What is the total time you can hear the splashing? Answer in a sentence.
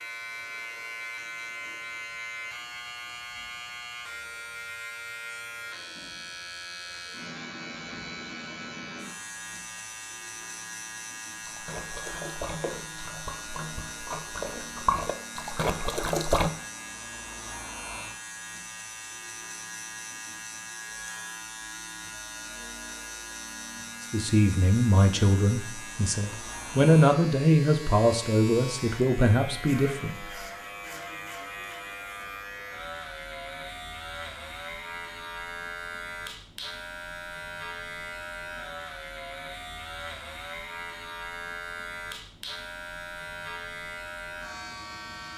You can hear the splashing for 5 seconds altogether.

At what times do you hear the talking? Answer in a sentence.
The talking can be heard from 24.1 to 30.2 s.